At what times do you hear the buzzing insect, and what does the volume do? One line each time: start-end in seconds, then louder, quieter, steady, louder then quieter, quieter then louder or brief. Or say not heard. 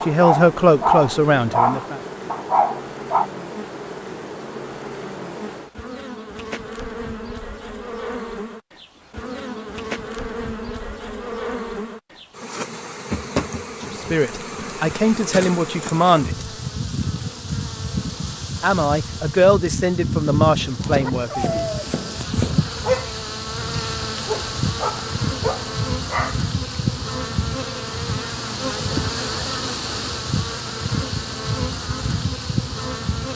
0.0-33.3 louder.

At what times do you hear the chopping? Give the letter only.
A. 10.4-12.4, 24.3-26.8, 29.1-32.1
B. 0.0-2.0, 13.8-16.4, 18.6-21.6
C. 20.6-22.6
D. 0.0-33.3
C.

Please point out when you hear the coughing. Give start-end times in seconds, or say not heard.
not heard.